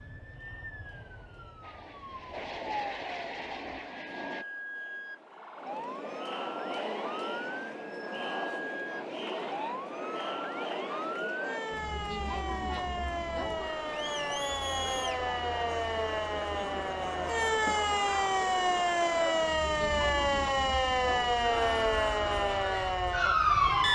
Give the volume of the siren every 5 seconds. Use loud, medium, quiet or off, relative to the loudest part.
quiet, quiet, medium, loud, loud.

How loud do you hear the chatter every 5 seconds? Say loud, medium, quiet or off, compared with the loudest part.
quiet, loud, loud, loud, loud.